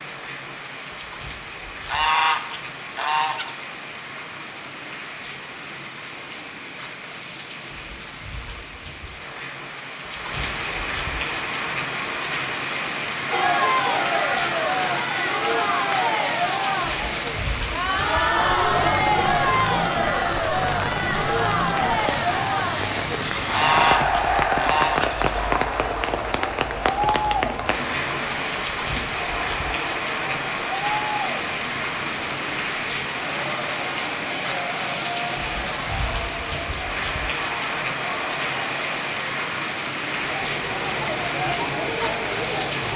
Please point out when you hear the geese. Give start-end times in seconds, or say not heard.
1.9-3.5, 23.5-25.2.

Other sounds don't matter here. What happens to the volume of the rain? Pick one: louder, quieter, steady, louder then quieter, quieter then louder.
louder.